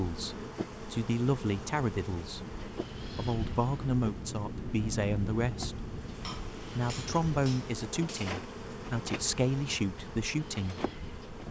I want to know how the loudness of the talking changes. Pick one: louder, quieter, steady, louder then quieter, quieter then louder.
steady.